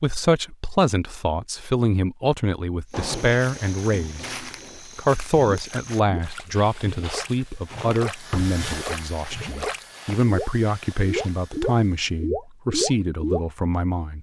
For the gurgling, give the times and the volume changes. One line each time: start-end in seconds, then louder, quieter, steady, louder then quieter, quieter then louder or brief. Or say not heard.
5.4-13.4 louder.